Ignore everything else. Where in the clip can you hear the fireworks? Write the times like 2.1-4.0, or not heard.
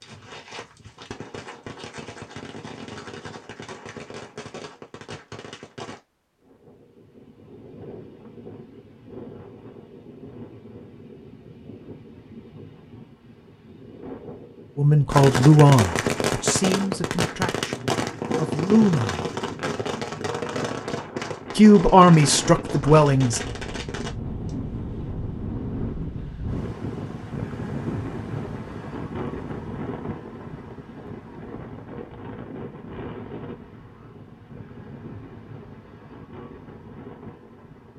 0.0-6.0, 15.1-24.6.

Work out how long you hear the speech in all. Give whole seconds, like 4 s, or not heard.
6 s.